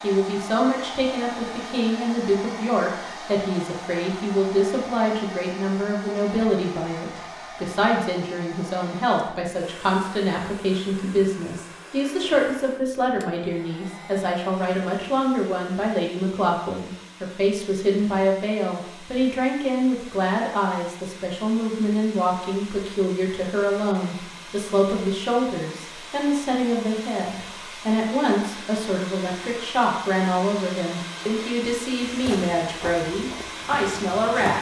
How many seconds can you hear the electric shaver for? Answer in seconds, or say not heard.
not heard.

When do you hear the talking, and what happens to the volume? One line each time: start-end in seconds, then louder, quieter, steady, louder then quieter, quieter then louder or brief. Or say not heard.
0.0-34.5 steady.